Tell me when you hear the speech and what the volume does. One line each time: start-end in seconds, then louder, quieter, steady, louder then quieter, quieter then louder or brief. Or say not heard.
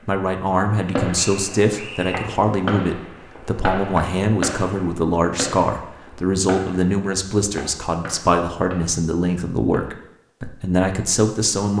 0.1-11.7 steady.